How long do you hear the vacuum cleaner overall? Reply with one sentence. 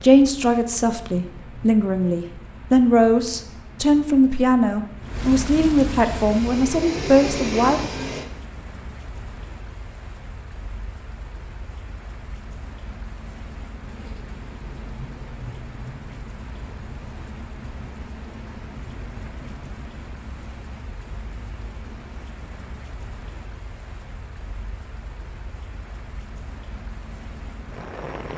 The vacuum cleaner can be heard for 2 seconds in total.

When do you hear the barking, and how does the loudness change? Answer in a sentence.
The barking can't be heard in this clip.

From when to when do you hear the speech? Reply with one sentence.
You can hear the speech from 0.0 to 7.9 s.